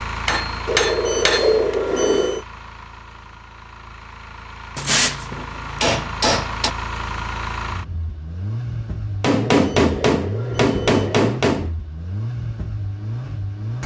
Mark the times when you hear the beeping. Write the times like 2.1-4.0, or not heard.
0.7-2.5, 9.5-11.3.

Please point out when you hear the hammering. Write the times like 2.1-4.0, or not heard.
0.2-1.8, 4.8-6.7, 9.2-11.8.